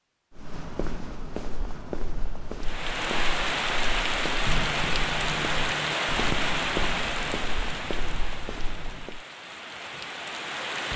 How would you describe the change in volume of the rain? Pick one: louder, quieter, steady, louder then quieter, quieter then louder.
quieter.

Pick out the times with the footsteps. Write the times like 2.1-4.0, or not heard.
0.3-9.2.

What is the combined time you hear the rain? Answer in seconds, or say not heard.
8 s.